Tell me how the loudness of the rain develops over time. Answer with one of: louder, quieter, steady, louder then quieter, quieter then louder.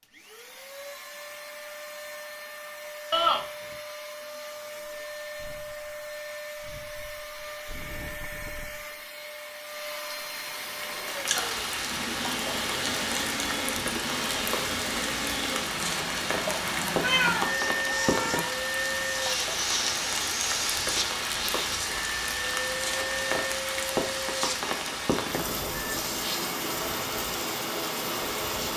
steady.